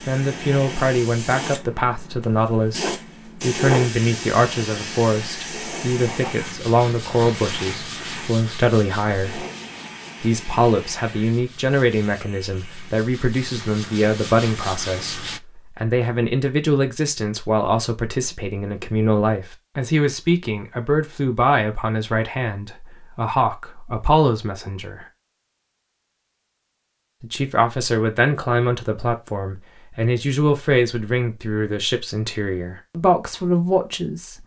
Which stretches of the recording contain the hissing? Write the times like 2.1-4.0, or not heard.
0.0-13.0.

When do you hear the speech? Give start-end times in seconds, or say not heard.
0.1-9.4, 10.2-25.1, 27.2-34.4.